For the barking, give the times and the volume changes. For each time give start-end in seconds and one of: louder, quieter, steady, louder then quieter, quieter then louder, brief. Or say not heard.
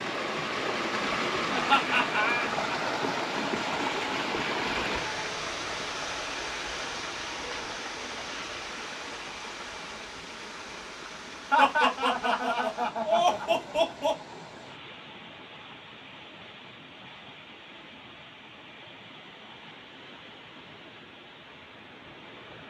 not heard.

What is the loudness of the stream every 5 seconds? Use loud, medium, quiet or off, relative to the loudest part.
loud, medium, quiet, quiet, quiet.